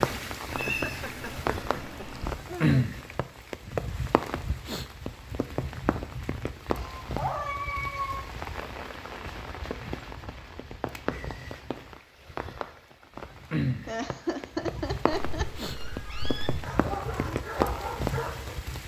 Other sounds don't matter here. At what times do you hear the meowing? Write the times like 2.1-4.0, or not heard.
0.5-2.4, 6.7-8.2, 15.3-16.6.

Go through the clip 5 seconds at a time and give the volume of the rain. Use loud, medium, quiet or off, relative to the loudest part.
loud, medium, medium, loud.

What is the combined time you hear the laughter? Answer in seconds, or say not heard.
4 s.